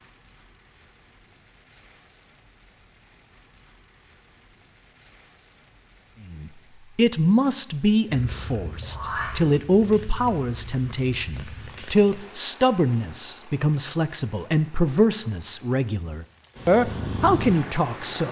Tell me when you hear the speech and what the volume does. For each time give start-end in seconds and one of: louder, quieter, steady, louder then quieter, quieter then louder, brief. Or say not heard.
6.2-18.2 steady.